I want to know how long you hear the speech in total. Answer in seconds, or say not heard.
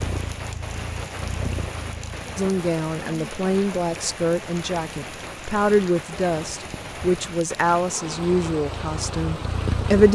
8 s.